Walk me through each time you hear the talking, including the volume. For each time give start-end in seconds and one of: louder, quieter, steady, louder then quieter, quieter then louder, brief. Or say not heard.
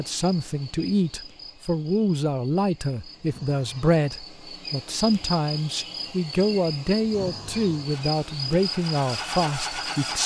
0.0-10.2 steady.